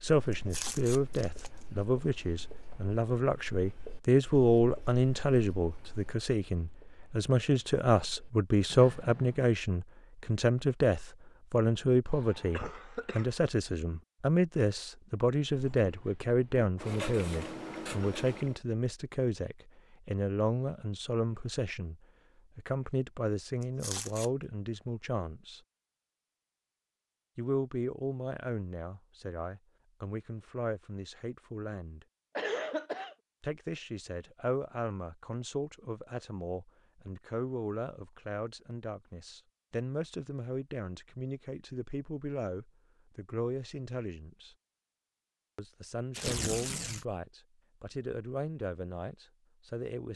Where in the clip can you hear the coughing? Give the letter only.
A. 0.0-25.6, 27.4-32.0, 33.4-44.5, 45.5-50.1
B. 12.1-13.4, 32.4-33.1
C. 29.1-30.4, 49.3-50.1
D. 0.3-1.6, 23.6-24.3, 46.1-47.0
B.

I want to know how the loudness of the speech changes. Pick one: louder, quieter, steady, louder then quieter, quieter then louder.
quieter.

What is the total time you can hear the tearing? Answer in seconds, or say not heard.
3 s.